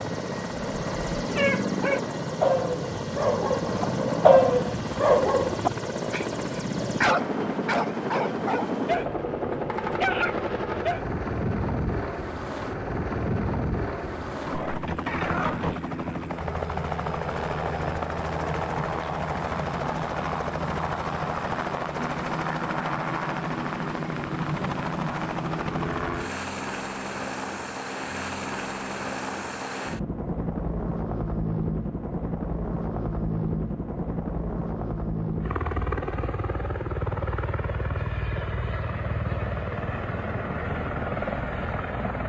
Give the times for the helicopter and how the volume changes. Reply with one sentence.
The helicopter can be heard from 0.0 to 42.2 s, at a steady volume.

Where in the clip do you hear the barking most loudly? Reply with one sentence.
The volume of the barking peaks at 4 seconds.